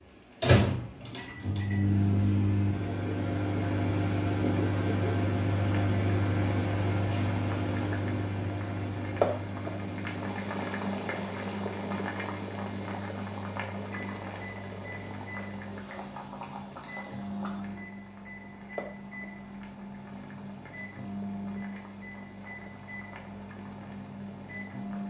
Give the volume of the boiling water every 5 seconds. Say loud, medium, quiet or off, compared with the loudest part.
off, loud, loud, medium, quiet.